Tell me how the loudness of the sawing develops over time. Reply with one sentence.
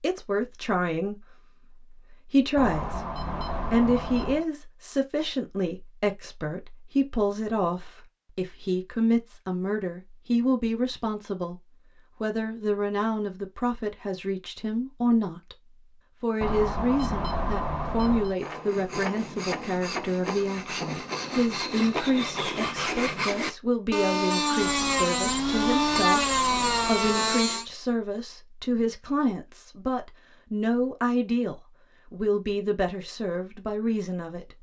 The volume of the sawing goes up.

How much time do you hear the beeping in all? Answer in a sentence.
You can hear the beeping for 6 seconds altogether.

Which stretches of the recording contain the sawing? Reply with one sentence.
The sawing can be heard from 18.4 to 27.6 s.